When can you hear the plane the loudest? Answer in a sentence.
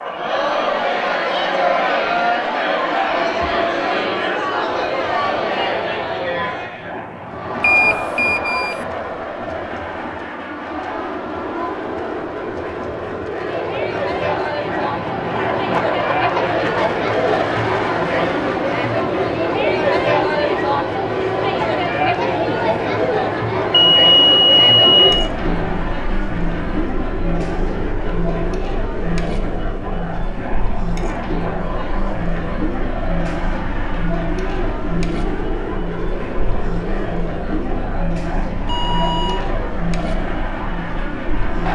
The volume of the plane peaks at 16 seconds.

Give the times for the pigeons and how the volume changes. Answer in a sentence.
You can't hear the pigeons here.